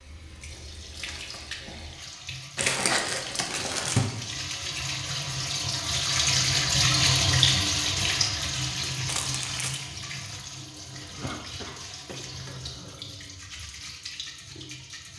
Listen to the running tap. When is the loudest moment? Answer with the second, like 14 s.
7 s.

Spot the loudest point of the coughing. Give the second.
11 s.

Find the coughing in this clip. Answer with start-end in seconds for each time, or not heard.
10.9-13.1.